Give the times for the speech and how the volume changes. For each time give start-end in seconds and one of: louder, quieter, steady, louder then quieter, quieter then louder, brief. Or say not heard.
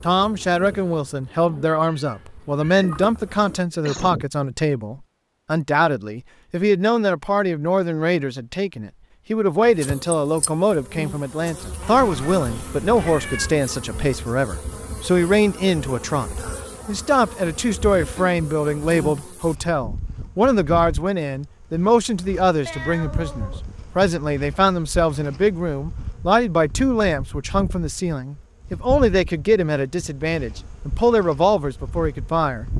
0.0-32.6 steady.